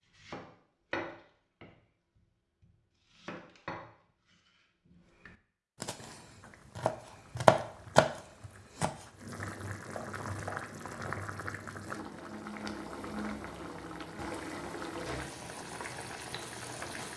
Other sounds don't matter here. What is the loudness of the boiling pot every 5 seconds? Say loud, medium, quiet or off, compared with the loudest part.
off, medium, loud, loud.